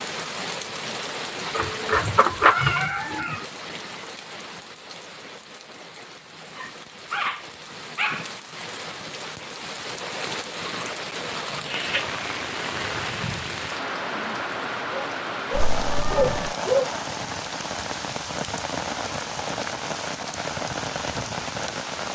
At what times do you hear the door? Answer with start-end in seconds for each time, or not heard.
not heard.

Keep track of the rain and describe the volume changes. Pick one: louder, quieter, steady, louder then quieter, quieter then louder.
quieter then louder.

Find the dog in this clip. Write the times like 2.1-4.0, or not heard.
6.5-8.2, 14.9-16.9.